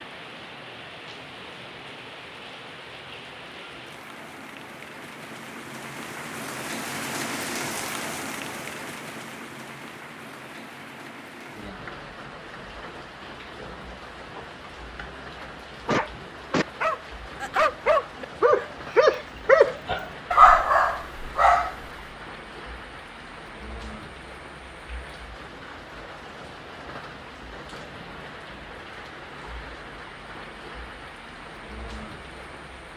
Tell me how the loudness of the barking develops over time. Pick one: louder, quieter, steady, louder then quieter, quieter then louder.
louder.